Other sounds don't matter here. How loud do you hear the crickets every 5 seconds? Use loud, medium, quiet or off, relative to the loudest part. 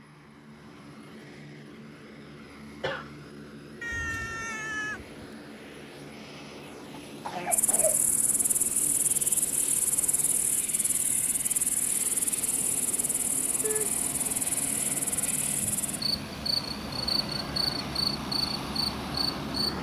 off, loud, medium, loud.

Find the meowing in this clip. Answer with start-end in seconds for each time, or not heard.
3.8-5.3.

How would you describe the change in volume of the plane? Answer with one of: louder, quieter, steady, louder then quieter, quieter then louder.
louder.